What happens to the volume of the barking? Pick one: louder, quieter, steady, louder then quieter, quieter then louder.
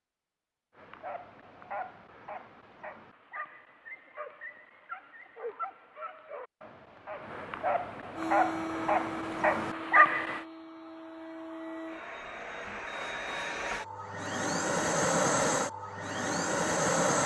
louder.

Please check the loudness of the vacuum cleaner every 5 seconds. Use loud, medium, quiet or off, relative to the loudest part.
off, medium, medium, loud.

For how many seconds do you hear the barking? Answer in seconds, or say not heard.
10 s.